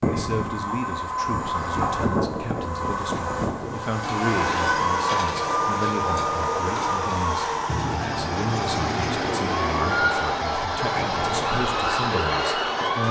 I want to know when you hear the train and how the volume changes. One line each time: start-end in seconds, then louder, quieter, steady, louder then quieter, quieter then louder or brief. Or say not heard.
0.0-13.0 steady.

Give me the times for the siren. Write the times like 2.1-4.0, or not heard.
4.0-13.0.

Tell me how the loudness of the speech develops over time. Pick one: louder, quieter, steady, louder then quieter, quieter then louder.
steady.